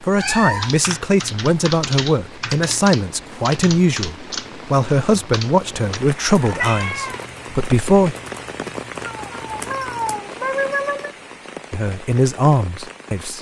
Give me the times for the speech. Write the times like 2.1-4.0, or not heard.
0.0-8.2, 11.7-13.3.